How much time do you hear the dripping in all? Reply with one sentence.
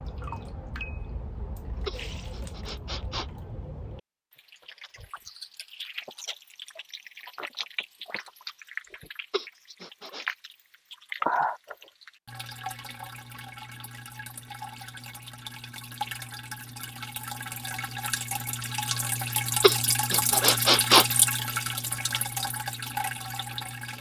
You can hear the dripping for 24 seconds altogether.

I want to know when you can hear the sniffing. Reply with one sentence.
You can hear the sniffing from 1.9 to 3.3 s, from 9.3 to 10.2 s and from 19.6 to 21.1 s.